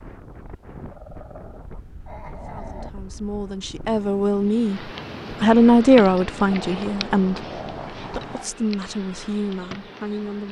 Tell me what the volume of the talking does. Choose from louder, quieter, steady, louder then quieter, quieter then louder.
louder then quieter.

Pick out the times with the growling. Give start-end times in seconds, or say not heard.
0.9-2.9, 6.5-8.5.